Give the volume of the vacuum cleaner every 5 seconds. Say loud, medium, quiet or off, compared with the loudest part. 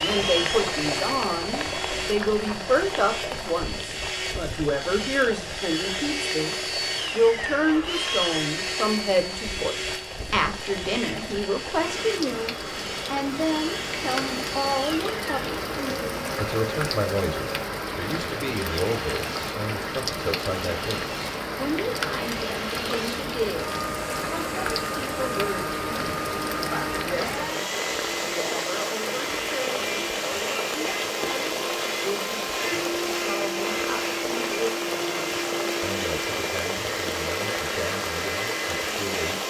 loud, loud, medium, medium, medium, loud, loud, loud.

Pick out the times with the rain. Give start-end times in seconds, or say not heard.
0.0-39.4.